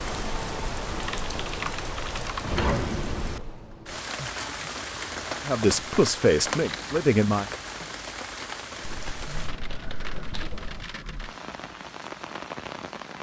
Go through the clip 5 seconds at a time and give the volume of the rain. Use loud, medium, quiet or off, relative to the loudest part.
loud, loud, medium.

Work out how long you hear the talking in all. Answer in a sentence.
You can hear the talking for 2 seconds altogether.